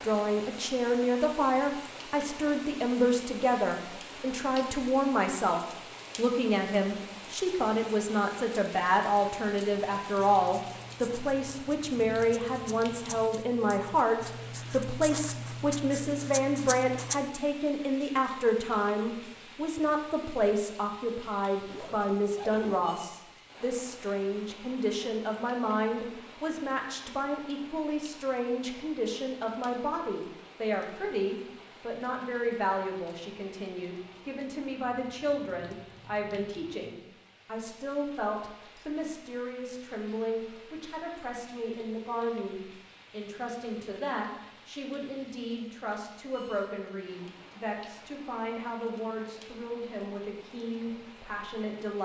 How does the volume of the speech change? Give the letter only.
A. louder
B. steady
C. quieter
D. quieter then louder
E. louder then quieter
C.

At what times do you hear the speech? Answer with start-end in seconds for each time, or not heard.
0.0-52.0.